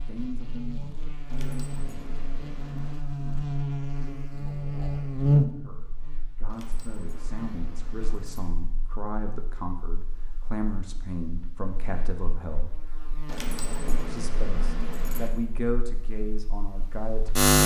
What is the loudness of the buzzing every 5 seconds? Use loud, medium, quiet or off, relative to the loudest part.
medium, loud, quiet, loud.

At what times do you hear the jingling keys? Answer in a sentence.
You can hear the jingling keys from 1.2 to 3.0 s, from 6.5 to 8.5 s and from 13.2 to 15.3 s.